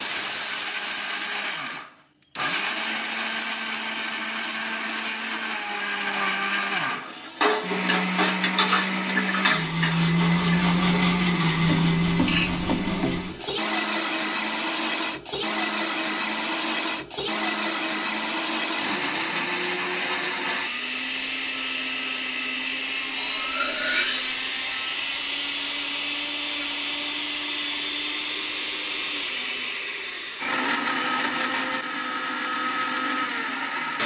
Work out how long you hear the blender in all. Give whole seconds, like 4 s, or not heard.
34 s.